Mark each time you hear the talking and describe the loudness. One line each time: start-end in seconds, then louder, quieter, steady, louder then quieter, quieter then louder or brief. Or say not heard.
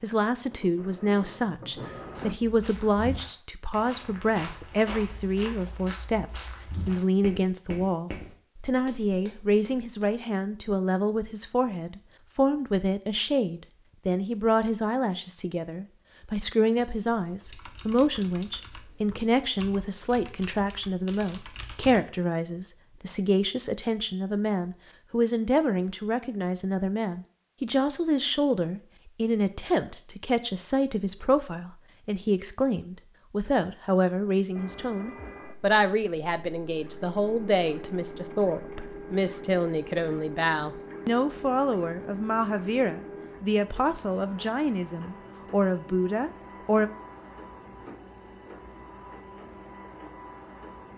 0.0-46.9 steady.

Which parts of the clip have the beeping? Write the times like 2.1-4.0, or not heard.
not heard.